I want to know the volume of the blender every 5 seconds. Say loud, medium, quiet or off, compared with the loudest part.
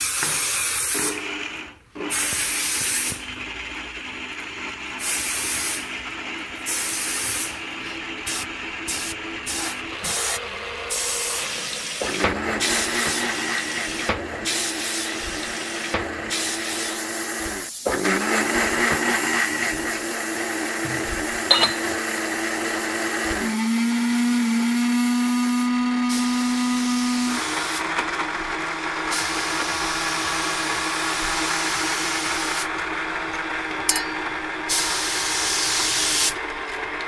medium, medium, medium, loud, loud, loud, loud, medium.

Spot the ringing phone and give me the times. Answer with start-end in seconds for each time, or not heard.
not heard.